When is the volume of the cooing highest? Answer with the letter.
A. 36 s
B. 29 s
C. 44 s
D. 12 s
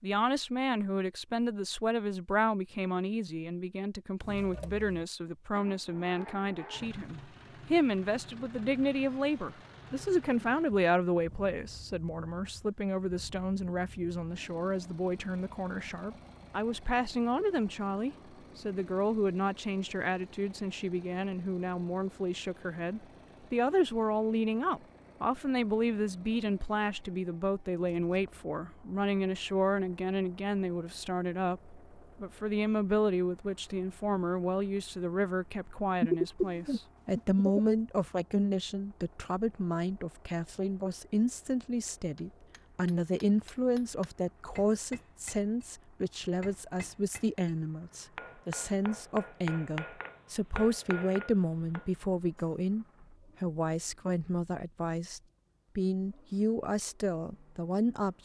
A.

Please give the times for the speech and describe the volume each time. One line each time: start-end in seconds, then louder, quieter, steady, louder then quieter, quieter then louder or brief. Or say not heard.
0.0-58.2 steady.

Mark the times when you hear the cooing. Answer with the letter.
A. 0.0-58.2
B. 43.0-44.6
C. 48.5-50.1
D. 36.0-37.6
D.